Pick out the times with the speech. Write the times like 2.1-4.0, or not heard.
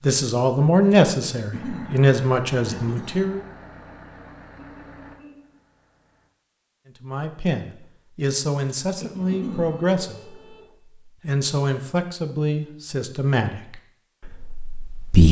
0.0-3.4, 7.0-15.2.